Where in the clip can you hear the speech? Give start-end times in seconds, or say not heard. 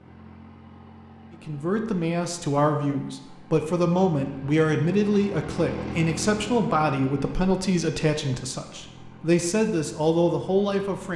1.4-11.1.